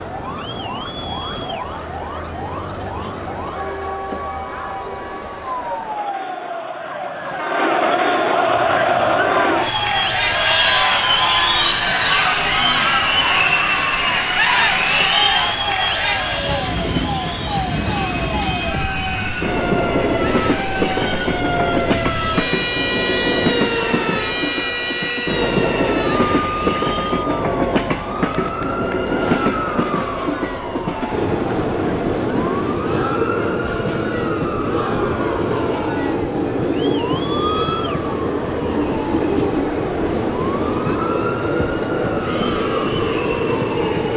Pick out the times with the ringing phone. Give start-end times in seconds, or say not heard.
not heard.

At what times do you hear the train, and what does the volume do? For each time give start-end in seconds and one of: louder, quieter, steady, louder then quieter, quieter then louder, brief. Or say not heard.
8.4-44.1 louder.